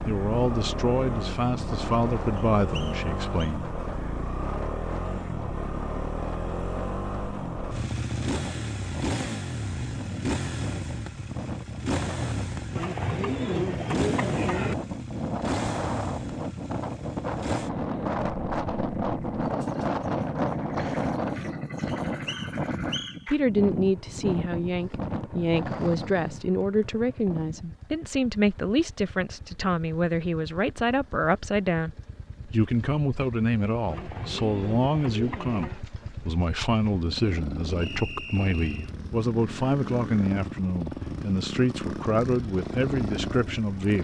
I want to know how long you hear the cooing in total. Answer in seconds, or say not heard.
4 s.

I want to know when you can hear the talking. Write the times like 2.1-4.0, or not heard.
0.0-3.7, 23.2-44.0.